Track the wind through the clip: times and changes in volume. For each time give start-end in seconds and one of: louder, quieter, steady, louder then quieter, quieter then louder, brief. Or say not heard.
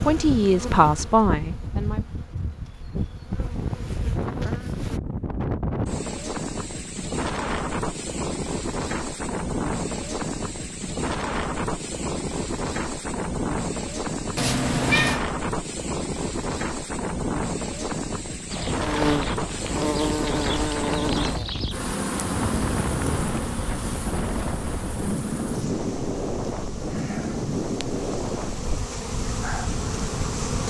0.0-30.6 steady.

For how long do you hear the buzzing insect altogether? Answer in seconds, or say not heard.
17 s.